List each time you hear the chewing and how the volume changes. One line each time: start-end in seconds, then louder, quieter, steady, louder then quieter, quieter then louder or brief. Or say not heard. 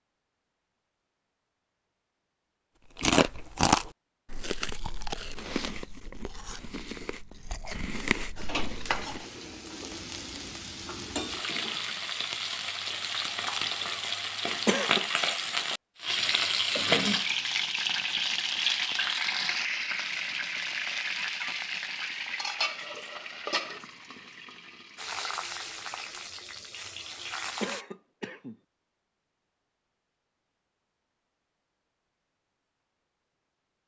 3.0-9.2 quieter then louder.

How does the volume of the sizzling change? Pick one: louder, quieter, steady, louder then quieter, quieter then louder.
louder then quieter.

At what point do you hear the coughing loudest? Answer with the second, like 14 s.
15 s.